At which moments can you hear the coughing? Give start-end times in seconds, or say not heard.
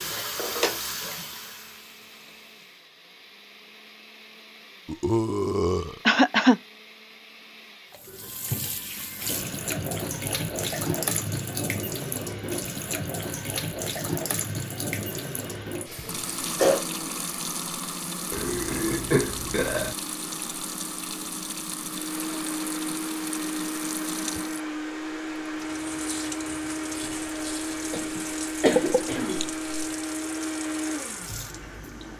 6.0-6.6, 15.9-16.9, 27.9-29.5.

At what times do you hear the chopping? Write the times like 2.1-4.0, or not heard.
not heard.